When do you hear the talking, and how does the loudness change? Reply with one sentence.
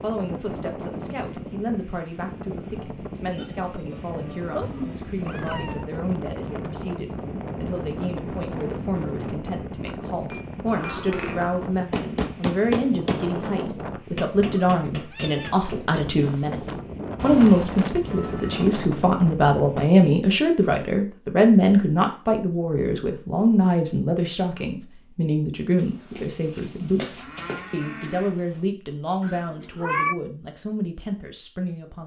You can hear the talking from 0.0 to 32.0 s, getting louder then quieter.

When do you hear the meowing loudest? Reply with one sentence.
The loudest moment of the meowing is at 30 seconds.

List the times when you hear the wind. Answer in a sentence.
You can hear the wind from 0.0 to 19.9 s.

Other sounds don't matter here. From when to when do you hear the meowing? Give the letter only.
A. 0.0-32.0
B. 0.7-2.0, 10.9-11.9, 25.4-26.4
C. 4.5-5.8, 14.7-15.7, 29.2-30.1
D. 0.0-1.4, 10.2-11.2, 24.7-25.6
C.